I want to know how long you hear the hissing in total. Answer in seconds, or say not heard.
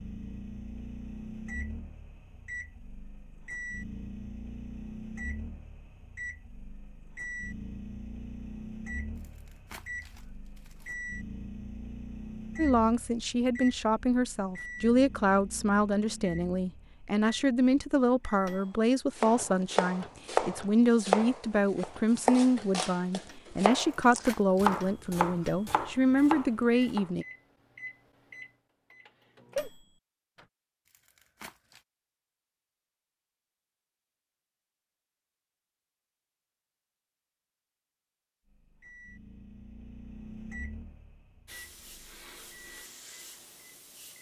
3 s.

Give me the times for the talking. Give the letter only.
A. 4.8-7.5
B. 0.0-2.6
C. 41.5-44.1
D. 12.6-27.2
D.